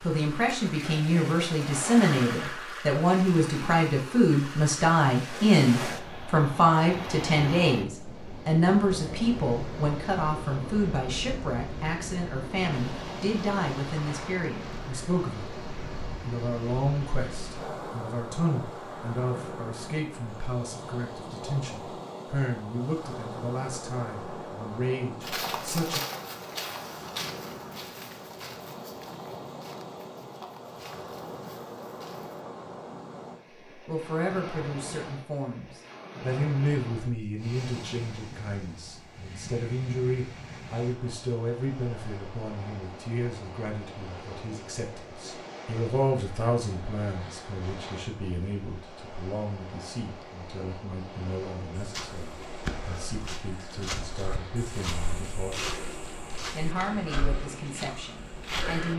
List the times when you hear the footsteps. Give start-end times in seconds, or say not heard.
25.2-32.5, 51.8-58.9.